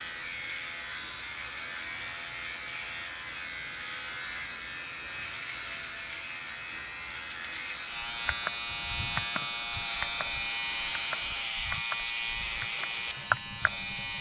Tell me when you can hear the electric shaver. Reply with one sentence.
You can hear the electric shaver from 0.0 to 14.1 s.